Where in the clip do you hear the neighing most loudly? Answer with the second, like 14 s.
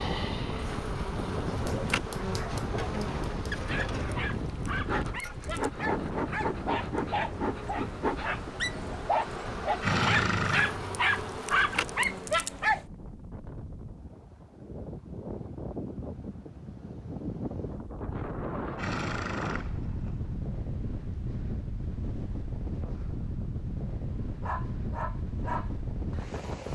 10 s.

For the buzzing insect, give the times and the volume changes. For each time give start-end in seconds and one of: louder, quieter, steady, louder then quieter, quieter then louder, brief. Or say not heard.
0.0-12.3 steady.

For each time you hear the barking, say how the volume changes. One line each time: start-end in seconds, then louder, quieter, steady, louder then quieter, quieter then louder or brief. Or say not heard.
1.4-12.8 louder
24.4-26.4 brief.